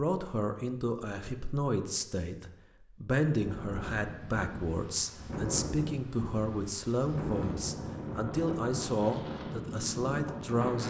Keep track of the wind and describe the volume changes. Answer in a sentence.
The loudness of the wind goes up.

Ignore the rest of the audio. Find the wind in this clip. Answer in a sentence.
You can hear the wind from 3.4 to 10.8 s.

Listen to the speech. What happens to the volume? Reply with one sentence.
The volume of the speech stays about the same.